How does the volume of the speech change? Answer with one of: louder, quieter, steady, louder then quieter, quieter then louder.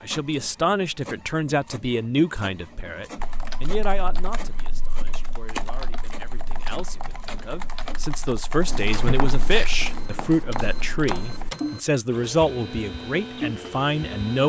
quieter then louder.